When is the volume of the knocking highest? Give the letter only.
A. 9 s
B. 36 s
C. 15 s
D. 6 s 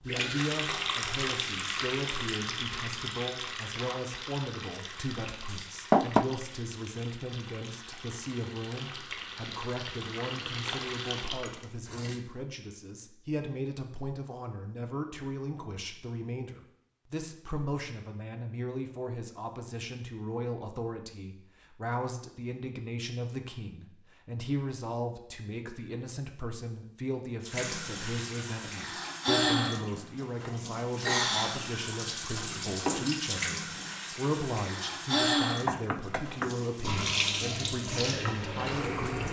D.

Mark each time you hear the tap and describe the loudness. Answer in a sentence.
You can hear the tap from 0.1 to 12.2 s, getting quieter then louder; and from 27.4 to 39.2 s, at a steady volume.